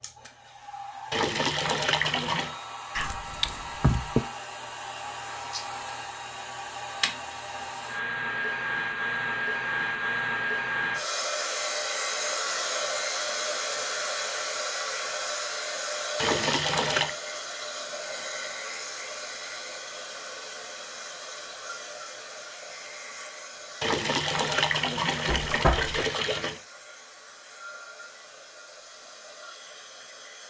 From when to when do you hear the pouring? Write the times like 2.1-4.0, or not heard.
1.1-2.5, 16.1-17.1, 23.8-26.6.